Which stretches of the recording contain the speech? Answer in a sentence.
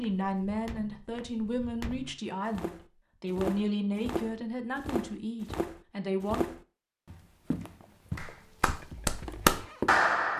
The speech can be heard from 0.0 to 6.5 s.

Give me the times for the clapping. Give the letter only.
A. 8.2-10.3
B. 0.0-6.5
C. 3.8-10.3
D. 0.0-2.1
A.